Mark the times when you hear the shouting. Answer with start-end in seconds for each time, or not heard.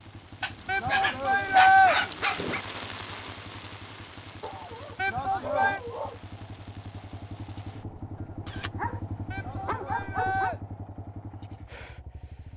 0.7-1.9, 5.0-5.8, 9.3-10.6.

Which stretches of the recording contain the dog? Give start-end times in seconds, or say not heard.
0.4-2.6, 4.4-6.3, 8.4-10.6.